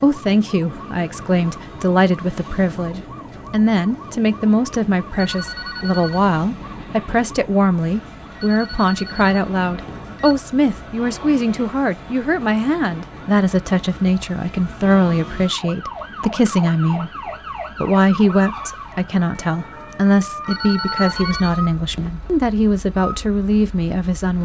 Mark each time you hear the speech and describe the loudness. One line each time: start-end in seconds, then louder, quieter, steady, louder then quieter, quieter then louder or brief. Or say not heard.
0.0-24.3 steady.